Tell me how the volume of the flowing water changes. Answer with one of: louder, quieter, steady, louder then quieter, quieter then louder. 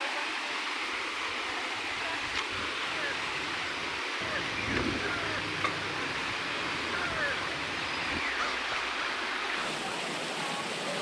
steady.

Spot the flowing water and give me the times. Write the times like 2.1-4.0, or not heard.
0.0-10.9.